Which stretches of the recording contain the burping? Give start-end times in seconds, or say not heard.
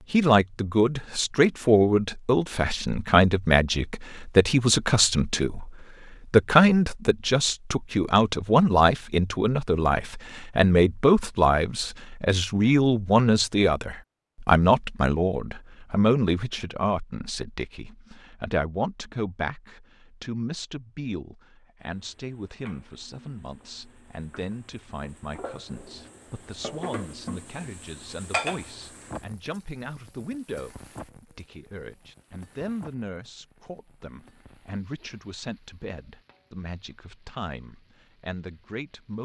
not heard.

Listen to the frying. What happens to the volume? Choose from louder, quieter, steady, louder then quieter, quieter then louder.
louder then quieter.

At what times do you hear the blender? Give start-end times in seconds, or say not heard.
not heard.